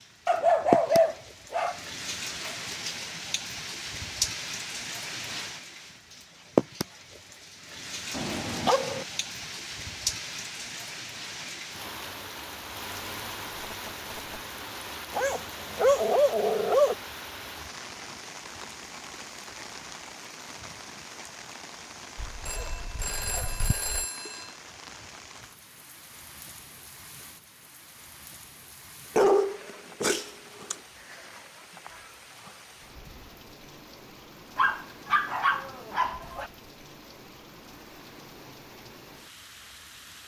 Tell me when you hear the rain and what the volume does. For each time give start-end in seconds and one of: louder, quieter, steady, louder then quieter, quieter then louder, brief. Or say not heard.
0.0-40.2 quieter.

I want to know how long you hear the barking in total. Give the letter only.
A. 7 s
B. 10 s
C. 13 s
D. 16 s
B.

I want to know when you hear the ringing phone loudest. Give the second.
24 s.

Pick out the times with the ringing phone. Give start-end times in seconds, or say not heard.
13.5-14.3, 22.4-24.6.